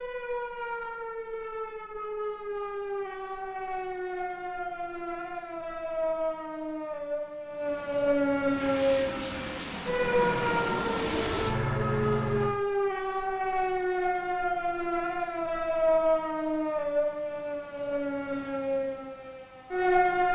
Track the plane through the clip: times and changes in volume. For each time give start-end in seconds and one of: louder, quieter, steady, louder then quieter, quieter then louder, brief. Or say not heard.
8.5-12.6 louder.